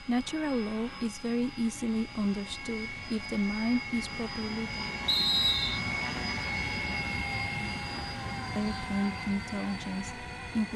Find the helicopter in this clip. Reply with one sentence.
The helicopter can be heard from 0.0 to 10.7 s.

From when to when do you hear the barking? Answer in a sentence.
You can't hear the barking here.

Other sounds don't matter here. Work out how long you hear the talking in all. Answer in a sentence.
The talking can be heard for 7 seconds in total.